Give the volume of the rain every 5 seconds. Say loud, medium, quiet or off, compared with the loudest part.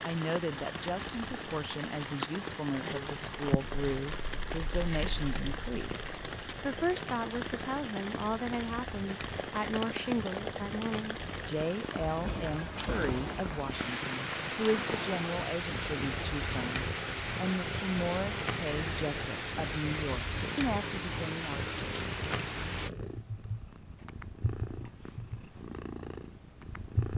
loud, loud, loud, loud, loud, off.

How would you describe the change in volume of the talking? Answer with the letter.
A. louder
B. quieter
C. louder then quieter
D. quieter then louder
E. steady
E.